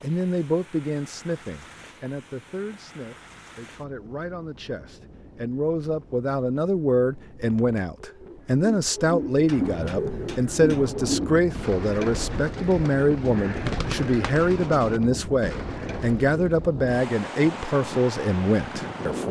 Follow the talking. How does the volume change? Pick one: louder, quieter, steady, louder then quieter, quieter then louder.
louder.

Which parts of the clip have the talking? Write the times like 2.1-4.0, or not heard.
0.0-19.2.